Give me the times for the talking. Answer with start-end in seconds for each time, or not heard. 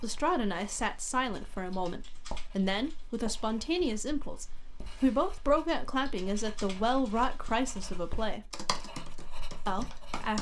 0.0-8.5, 9.7-10.3.